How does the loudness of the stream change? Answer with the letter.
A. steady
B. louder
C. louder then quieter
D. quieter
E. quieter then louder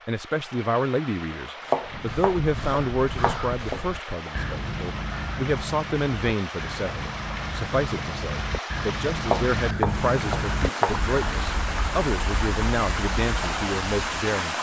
B.